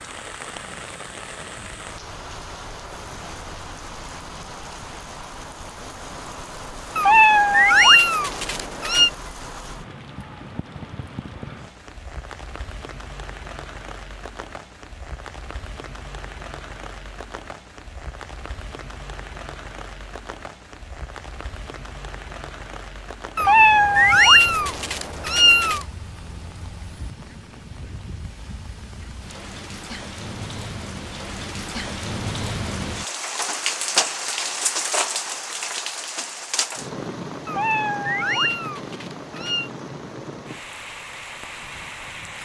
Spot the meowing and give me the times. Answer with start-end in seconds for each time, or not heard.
7.0-9.1, 23.4-25.9, 37.5-39.7.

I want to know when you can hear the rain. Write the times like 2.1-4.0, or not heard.
0.0-42.3.